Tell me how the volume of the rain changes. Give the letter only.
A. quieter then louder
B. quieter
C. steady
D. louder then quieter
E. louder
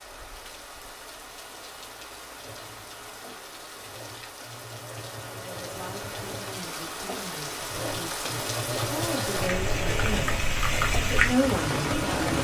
E.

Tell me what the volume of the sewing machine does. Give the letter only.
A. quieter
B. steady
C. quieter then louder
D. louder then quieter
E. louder
E.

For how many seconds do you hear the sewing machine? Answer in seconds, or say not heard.
10 s.